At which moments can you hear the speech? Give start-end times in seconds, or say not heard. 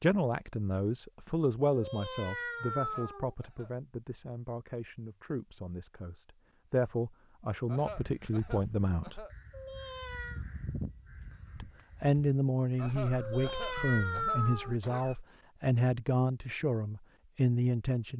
0.0-9.2, 11.6-18.1.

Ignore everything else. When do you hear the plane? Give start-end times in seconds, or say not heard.
not heard.